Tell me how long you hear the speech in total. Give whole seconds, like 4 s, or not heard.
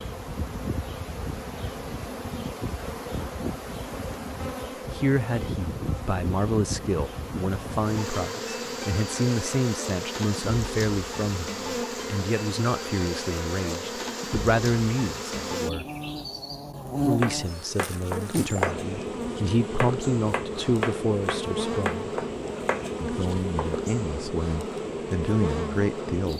19 s.